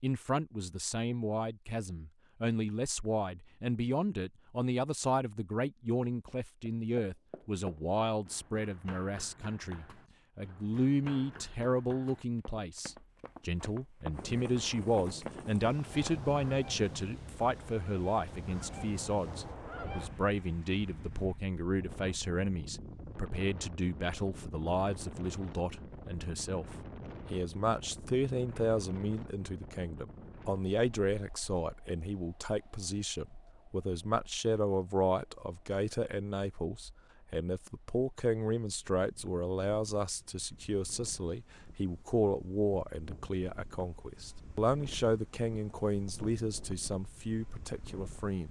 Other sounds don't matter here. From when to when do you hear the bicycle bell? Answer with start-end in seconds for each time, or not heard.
not heard.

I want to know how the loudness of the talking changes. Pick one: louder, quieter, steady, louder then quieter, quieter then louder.
steady.